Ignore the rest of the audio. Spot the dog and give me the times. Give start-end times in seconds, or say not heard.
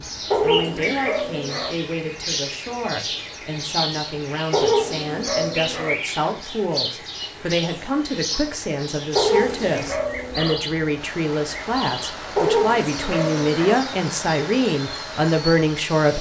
0.3-1.8, 4.5-6.0, 9.2-10.6, 12.3-13.8.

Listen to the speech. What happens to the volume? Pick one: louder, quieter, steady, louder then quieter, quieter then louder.
louder.